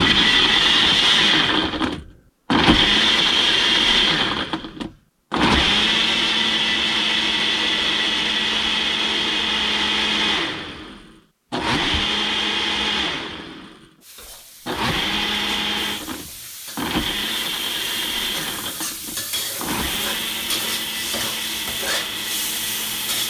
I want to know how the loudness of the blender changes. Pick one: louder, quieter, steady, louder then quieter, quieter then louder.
quieter.